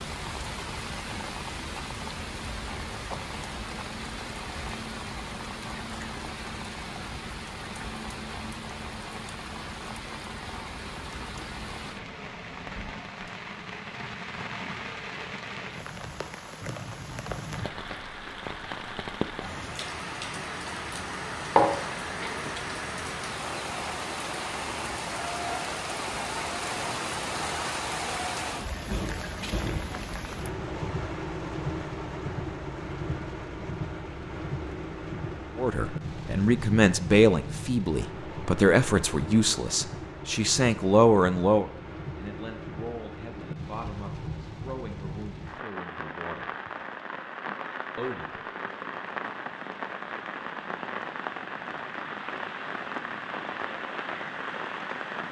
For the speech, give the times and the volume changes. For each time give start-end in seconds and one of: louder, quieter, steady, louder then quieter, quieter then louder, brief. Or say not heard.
35.5-46.5 quieter
48.0-48.4 brief.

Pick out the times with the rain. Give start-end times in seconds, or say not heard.
0.0-55.2.